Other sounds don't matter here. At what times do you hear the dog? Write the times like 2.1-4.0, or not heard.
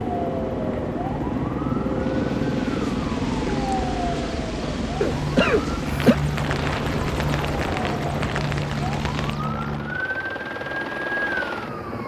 not heard.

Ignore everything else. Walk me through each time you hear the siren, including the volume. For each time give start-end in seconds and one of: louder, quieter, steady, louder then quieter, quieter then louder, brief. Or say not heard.
0.0-12.0 steady.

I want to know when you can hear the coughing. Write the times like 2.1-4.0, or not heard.
5.0-6.2.